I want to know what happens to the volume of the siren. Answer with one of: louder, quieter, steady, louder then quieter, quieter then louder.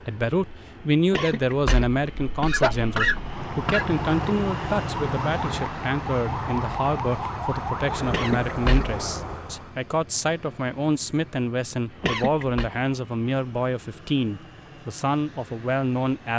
steady.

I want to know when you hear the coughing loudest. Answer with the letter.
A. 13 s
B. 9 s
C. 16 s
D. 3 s
D.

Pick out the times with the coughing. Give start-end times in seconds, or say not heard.
1.1-3.9, 8.1-9.0, 12.0-12.7.